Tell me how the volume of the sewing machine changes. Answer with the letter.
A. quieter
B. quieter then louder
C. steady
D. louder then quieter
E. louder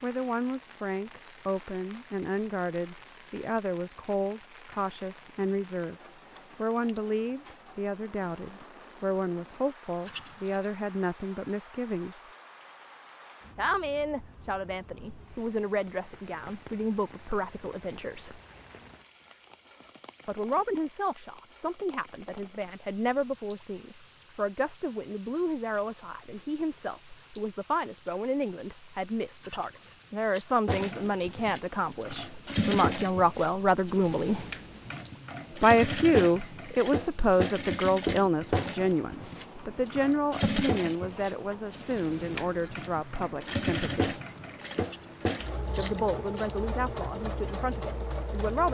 C.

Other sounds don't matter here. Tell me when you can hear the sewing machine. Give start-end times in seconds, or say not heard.
30.6-48.6.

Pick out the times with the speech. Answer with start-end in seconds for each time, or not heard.
0.0-6.0, 6.5-12.2, 13.6-18.4, 20.2-34.5, 35.6-44.2, 45.8-48.6.